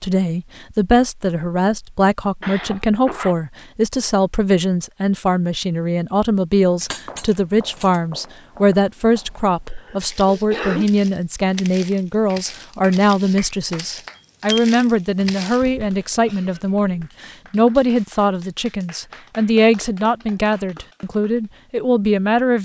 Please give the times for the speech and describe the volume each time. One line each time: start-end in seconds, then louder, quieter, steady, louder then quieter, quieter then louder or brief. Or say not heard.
0.0-22.5 steady.